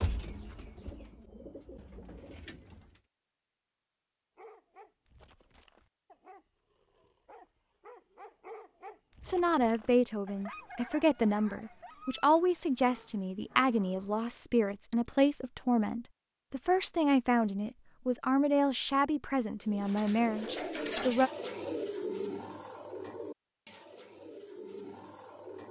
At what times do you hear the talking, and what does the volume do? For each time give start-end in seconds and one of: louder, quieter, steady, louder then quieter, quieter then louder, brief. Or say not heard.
9.2-21.3 steady.